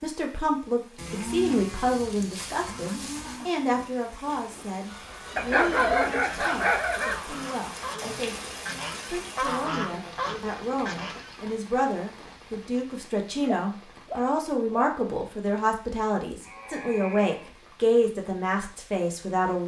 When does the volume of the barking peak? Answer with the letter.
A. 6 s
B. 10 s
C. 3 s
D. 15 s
A.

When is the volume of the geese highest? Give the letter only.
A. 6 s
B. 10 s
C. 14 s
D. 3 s
B.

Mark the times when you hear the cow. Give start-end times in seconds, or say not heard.
0.9-3.5, 16.4-17.6.